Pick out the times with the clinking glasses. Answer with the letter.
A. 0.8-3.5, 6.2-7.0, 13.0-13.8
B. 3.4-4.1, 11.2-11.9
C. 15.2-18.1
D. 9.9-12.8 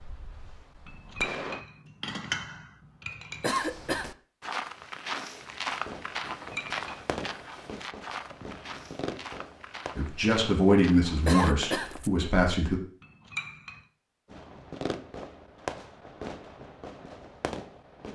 A.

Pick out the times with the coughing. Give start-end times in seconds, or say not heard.
3.4-4.1, 11.2-11.9.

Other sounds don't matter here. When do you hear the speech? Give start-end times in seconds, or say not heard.
9.9-12.8.